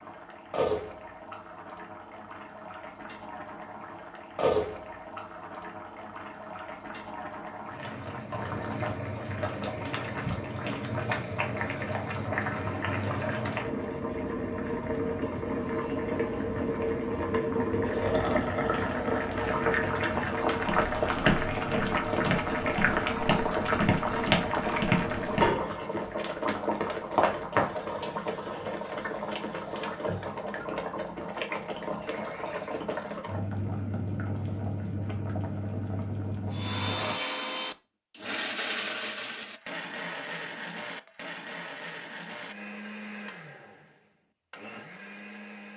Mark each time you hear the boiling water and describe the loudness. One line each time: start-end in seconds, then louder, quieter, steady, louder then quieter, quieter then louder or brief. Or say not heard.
0.0-37.1 louder then quieter.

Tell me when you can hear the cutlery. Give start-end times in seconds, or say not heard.
not heard.